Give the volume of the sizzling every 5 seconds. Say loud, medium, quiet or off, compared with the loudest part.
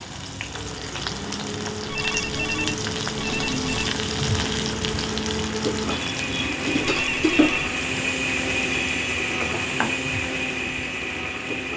loud, loud, medium.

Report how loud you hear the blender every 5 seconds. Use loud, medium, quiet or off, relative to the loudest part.
medium, loud, loud.